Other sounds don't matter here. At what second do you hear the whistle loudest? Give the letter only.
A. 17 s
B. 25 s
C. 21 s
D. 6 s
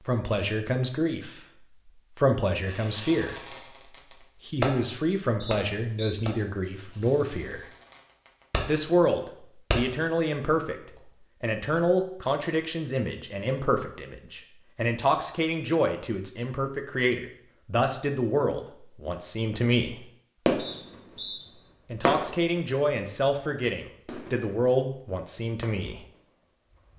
C.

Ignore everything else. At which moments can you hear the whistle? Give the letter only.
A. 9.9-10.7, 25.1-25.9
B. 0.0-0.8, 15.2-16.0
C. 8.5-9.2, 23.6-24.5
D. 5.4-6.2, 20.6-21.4
D.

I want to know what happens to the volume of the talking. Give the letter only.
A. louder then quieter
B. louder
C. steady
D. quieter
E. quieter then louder
C.